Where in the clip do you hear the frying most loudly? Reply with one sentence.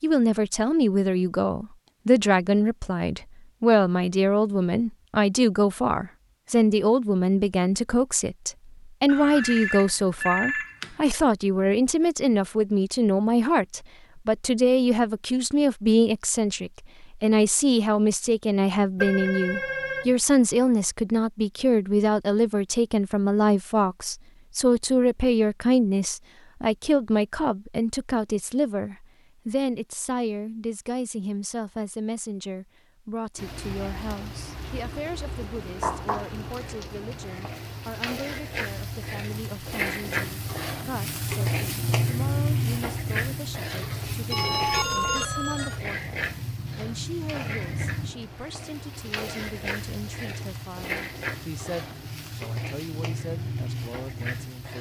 The volume of the frying peaks at 42 seconds.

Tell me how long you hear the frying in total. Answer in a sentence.
You can hear the frying for 21 seconds altogether.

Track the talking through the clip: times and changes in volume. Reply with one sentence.
The talking can be heard from 0.0 to 54.7 s, getting quieter.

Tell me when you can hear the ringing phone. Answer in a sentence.
The ringing phone can be heard from 9.1 to 10.9 s, from 18.9 to 20.1 s and from 44.3 to 45.8 s.